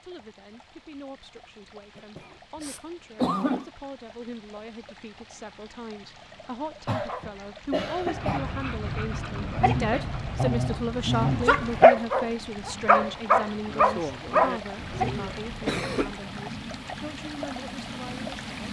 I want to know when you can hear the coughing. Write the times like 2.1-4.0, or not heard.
1.9-3.6, 6.8-8.4, 14.9-16.1.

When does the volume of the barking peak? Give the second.
12 s.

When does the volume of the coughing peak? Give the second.
3 s.